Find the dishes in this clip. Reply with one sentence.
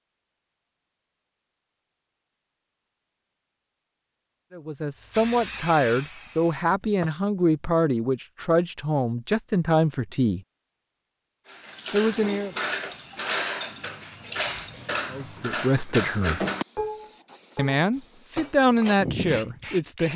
You can hear the dishes from 11.4 to 19.1 s.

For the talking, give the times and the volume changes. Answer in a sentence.
The talking can be heard from 4.5 to 10.4 s, at a steady volume; briefly from 11.9 to 12.6 s; briefly from 15.1 to 16.4 s; and briefly from 17.6 to 20.1 s.